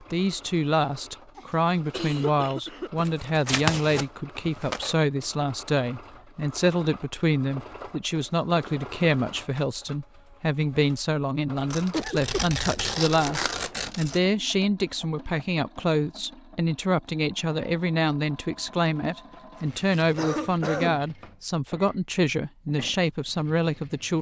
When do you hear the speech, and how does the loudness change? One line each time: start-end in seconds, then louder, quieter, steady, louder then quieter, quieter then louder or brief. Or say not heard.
0.0-24.1 steady.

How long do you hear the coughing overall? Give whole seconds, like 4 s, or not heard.
3 s.